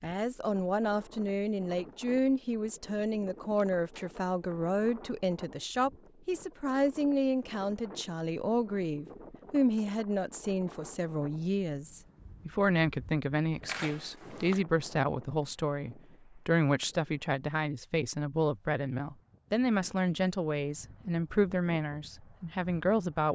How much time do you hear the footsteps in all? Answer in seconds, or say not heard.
not heard.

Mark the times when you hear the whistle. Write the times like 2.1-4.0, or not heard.
not heard.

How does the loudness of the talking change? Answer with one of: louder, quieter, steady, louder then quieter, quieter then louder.
steady.